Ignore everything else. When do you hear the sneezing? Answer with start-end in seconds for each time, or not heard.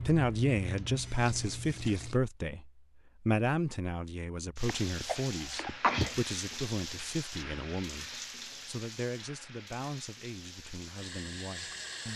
4.7-6.2.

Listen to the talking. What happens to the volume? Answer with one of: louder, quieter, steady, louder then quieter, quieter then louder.
quieter.